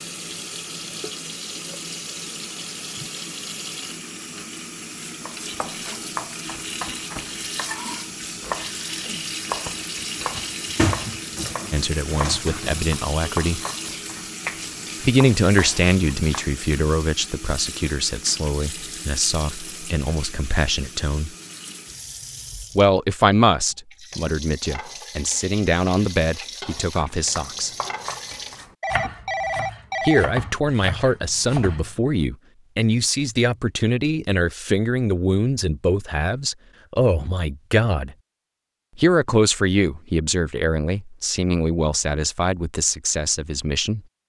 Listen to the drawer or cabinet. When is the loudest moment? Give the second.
11 s.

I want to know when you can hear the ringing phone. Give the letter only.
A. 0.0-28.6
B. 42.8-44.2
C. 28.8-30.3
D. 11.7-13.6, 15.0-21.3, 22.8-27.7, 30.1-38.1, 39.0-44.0
C.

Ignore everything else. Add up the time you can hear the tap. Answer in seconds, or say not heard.
29 s.